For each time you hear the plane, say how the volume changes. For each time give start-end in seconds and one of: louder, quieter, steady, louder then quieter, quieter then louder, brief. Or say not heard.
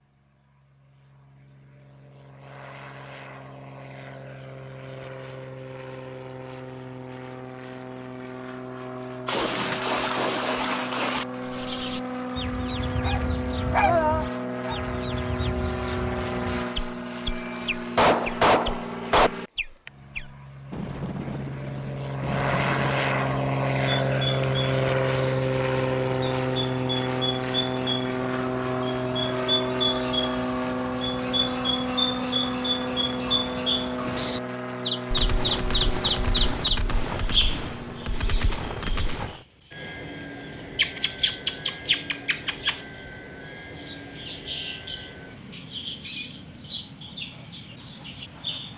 0.0-48.7 louder then quieter.